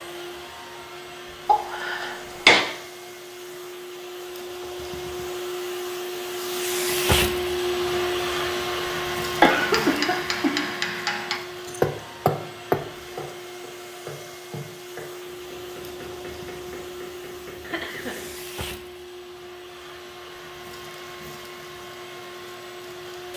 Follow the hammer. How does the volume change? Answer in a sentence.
The volume of the hammer goes up, then down.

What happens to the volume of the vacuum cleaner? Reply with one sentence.
The volume of the vacuum cleaner goes up, then down.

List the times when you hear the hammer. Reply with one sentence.
The hammer can be heard from 9.6 to 18.4 s.